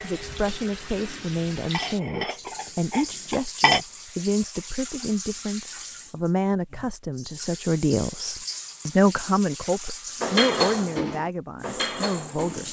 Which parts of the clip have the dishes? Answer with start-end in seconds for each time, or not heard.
0.0-3.8, 10.2-12.6.